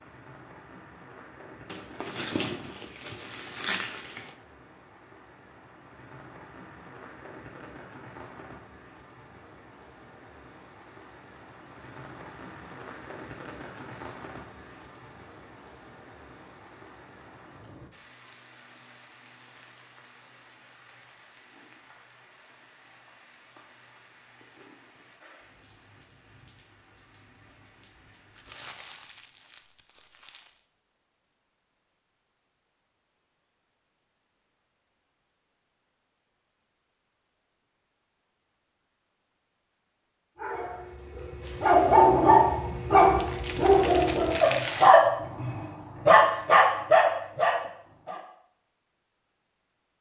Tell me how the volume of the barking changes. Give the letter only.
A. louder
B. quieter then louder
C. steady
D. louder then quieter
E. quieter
C.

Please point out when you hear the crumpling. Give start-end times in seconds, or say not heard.
1.6-4.3, 28.3-30.6, 43.1-44.9.